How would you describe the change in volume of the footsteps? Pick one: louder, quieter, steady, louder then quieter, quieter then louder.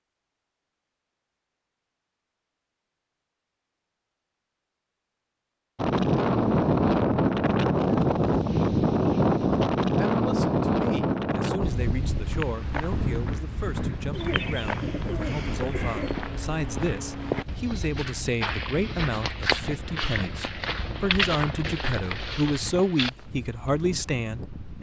louder.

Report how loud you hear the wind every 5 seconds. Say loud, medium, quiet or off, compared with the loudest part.
off, loud, medium, quiet, quiet.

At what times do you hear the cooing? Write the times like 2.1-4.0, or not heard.
14.1-16.1.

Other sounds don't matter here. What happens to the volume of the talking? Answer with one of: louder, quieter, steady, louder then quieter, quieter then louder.
louder.